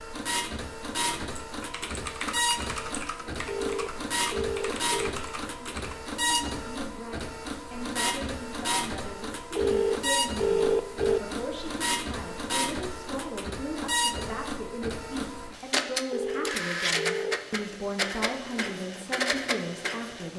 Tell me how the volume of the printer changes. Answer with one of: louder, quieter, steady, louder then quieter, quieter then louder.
steady.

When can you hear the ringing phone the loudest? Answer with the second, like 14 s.
11 s.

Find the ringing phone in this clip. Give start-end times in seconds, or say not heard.
3.5-5.1, 9.6-11.2, 16.1-17.4.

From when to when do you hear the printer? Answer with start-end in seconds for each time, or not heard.
0.0-20.3.